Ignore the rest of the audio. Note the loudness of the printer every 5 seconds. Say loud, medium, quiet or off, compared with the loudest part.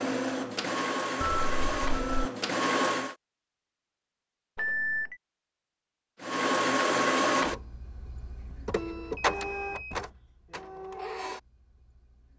loud, loud, quiet.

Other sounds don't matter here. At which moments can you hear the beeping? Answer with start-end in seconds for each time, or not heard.
1.2-2.3, 4.5-5.2, 8.4-9.9.